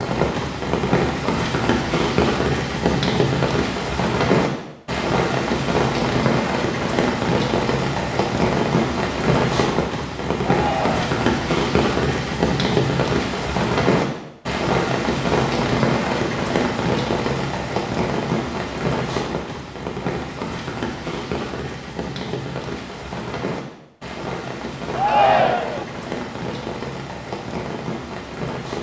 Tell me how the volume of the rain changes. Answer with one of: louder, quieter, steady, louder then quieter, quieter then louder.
quieter.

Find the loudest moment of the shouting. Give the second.
25 s.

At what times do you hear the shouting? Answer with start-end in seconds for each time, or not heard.
10.4-11.1, 24.9-25.9.